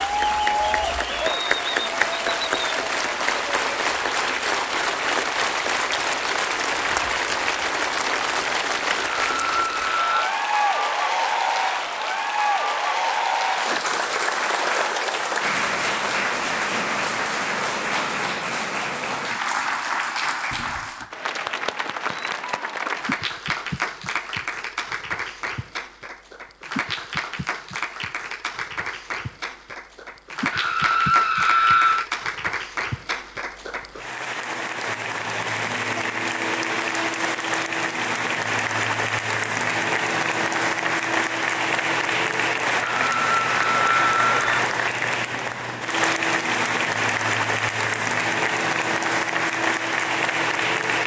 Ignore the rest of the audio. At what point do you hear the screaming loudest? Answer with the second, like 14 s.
32 s.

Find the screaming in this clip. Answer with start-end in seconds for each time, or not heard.
9.2-10.3, 30.5-32.0, 43.0-44.6.